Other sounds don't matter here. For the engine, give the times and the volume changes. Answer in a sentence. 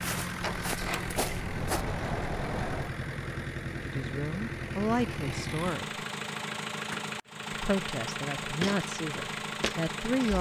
The engine can be heard from 0.0 to 10.3 s, at a steady volume.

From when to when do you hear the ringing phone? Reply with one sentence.
The ringing phone can't be heard in this clip.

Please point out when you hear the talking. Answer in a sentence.
The talking can be heard from 3.9 to 6.0 s and from 7.5 to 10.3 s.